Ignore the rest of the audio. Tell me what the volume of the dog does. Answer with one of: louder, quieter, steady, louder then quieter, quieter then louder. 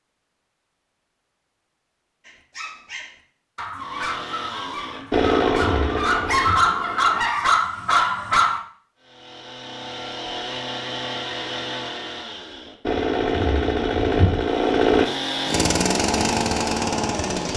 louder.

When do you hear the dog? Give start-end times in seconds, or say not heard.
2.2-8.6.